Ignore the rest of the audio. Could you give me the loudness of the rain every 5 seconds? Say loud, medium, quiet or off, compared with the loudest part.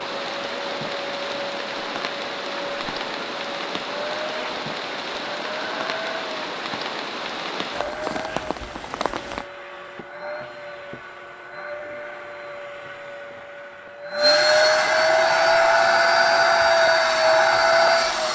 loud, loud, off, off.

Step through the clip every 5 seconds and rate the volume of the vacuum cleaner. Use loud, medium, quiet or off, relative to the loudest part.
quiet, quiet, medium, loud.